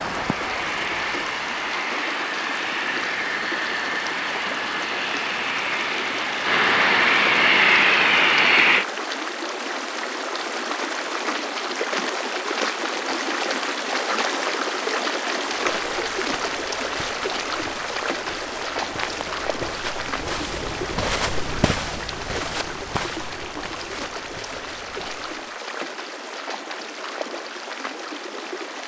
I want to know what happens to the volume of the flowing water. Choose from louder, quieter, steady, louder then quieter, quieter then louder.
louder then quieter.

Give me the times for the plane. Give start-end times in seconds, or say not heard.
0.0-8.8.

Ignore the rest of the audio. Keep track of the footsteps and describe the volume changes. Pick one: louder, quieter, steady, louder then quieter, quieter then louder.
louder then quieter.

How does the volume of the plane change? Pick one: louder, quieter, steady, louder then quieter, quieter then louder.
louder.